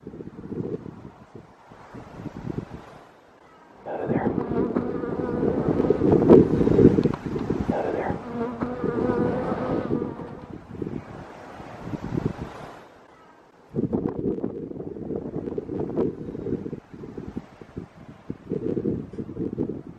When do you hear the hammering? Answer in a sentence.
The hammering can't be heard in this clip.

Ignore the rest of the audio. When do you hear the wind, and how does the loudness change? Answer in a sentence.
You can hear the wind from 0.0 to 19.9 s, getting louder then quieter.